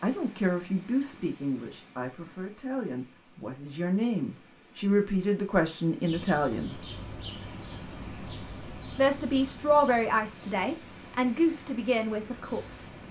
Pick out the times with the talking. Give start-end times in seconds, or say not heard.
0.0-6.8, 8.9-12.9.